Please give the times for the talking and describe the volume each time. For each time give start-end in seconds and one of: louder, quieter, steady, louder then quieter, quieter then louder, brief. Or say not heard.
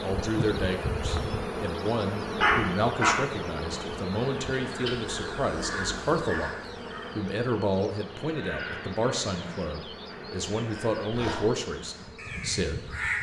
0.0-12.9 steady.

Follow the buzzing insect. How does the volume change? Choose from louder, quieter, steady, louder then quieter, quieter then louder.
quieter.